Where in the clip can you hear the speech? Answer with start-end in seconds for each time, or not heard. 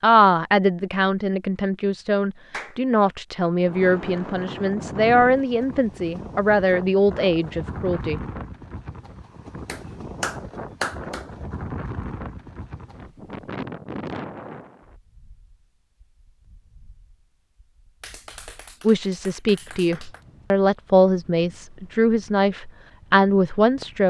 0.0-8.2, 18.8-24.0.